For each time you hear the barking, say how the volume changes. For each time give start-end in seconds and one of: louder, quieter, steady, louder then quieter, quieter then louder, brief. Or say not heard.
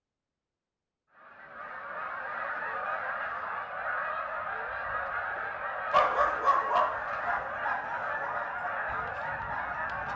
5.9-10.1 quieter.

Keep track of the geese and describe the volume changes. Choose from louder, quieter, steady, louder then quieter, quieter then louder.
steady.